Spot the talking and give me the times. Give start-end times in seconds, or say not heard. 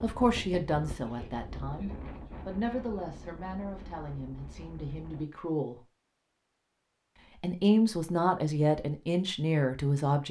0.0-5.8, 7.4-10.2.